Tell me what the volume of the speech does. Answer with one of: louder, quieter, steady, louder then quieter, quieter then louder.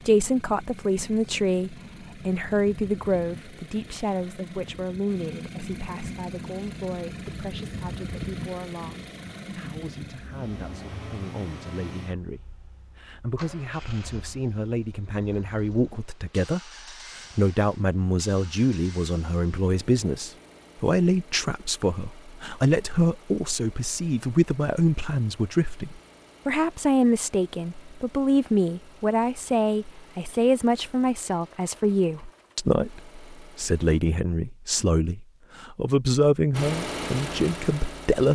quieter then louder.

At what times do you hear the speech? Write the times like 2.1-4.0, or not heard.
0.1-16.7, 17.4-38.2.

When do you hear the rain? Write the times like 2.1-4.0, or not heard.
not heard.